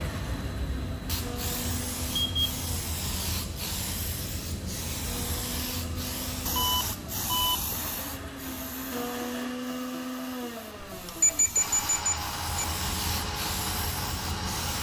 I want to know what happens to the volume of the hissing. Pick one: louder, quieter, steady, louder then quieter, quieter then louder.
quieter then louder.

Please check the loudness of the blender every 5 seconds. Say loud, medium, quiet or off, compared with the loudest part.
medium, loud, loud.